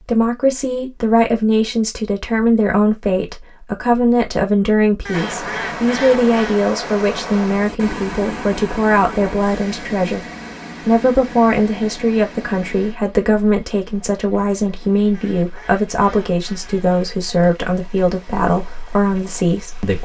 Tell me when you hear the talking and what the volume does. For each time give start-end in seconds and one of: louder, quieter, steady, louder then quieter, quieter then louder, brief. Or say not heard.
0.1-10.2 steady
10.8-19.9 steady.